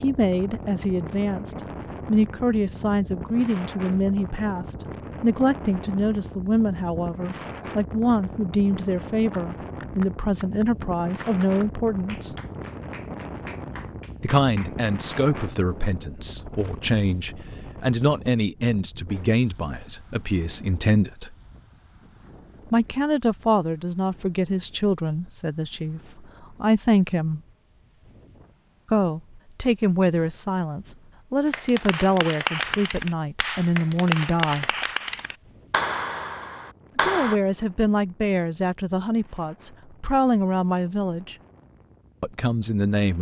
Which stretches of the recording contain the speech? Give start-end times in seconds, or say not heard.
0.0-12.3, 14.2-21.4, 22.7-27.4, 28.9-34.7, 37.0-41.4, 42.2-43.1.